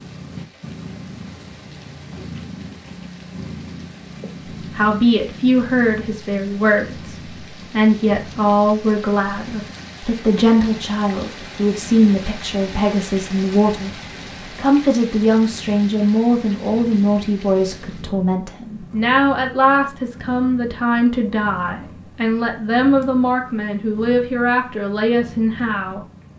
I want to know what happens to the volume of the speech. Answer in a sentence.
The volume of the speech stays about the same.